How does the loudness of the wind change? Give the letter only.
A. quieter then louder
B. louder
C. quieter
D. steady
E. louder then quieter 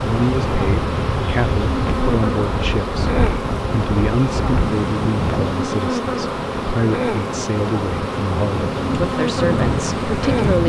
A.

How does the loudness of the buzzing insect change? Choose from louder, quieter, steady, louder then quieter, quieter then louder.
steady.